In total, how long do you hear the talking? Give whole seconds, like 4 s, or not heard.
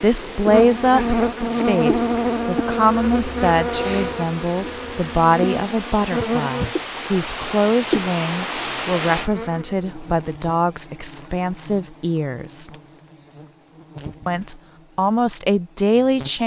15 s.